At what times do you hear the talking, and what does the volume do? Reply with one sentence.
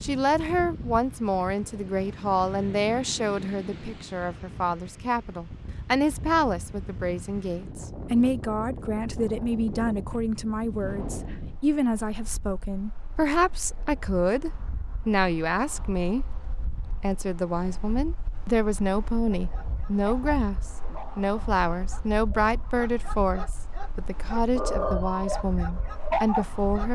The talking can be heard from 0.0 to 26.9 s, at a steady volume.